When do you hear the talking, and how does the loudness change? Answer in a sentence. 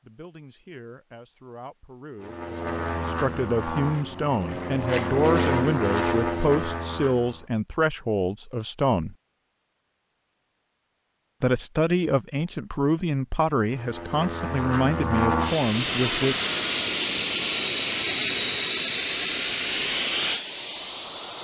You can hear the talking from 0.0 to 9.2 s, getting louder; and from 11.4 to 16.4 s, at a steady volume.